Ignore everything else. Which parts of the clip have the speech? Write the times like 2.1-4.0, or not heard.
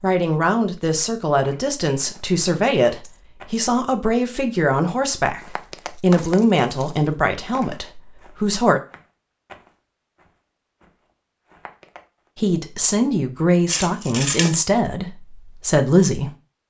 0.0-8.8, 12.3-16.3.